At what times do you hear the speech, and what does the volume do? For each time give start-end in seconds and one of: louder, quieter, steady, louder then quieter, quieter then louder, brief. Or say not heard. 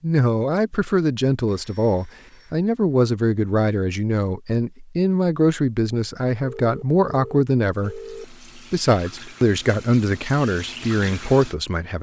0.0-11.9 steady.